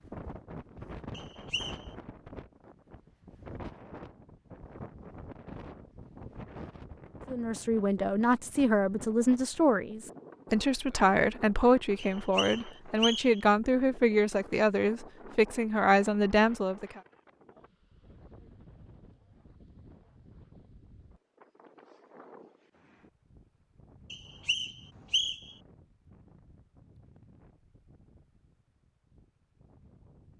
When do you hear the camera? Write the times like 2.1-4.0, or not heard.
not heard.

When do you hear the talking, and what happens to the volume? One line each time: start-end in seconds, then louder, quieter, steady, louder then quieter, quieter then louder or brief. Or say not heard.
7.2-17.0 steady.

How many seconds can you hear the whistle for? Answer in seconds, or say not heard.
4 s.